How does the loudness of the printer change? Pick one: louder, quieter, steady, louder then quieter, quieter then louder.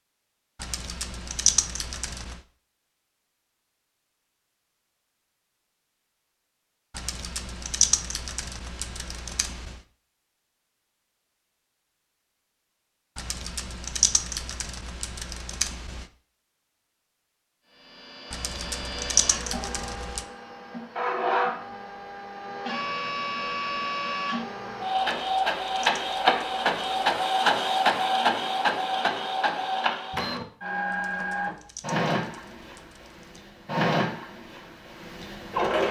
louder then quieter.